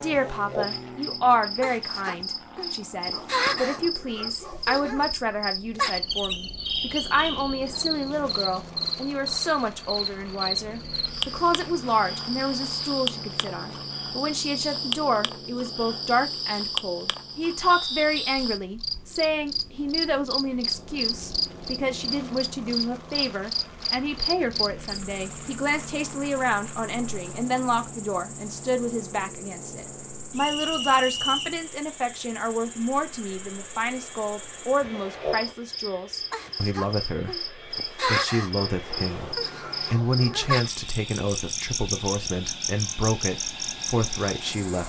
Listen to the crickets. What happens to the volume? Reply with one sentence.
The volume of the crickets goes down, then up.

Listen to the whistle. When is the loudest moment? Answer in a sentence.
The loudest moment of the whistle is at 31 seconds.